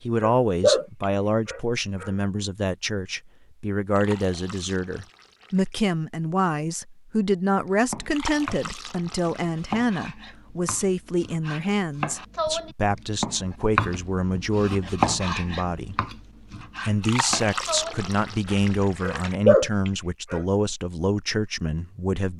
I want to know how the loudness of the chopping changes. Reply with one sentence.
The loudness of the chopping goes up, then down.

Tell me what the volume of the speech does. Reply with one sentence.
The loudness of the speech stays about the same.